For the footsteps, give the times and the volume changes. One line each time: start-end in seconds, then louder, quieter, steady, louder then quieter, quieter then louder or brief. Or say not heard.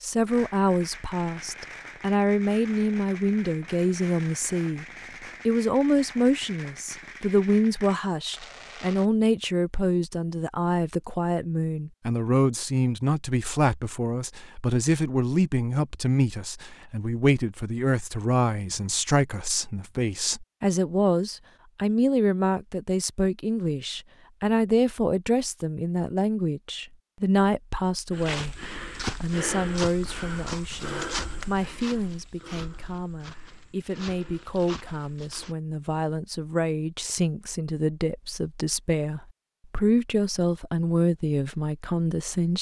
28.1-35.5 quieter.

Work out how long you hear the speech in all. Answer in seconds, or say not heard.
42 s.